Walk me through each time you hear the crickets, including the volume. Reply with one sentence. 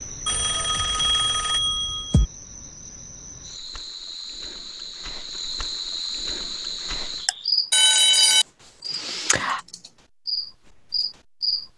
You can hear the crickets from 0.0 to 11.7 s, getting louder.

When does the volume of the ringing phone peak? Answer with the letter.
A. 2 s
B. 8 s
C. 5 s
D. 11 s
B.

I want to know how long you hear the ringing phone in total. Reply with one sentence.
The ringing phone can be heard for 3 seconds in total.